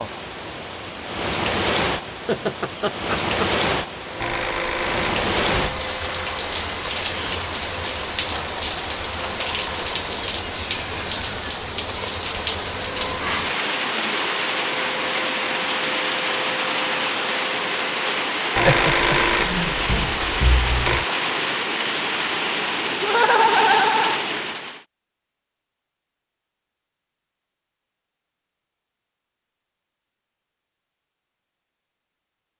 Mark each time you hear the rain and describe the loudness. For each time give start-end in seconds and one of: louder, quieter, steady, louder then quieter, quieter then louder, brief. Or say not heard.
0.0-24.8 steady.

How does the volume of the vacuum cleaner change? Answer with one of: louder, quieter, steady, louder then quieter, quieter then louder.
steady.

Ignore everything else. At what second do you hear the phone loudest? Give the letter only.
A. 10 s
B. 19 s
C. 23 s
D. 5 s
B.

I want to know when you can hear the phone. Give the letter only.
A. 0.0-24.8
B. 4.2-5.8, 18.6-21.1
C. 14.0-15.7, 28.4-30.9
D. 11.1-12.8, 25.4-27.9
B.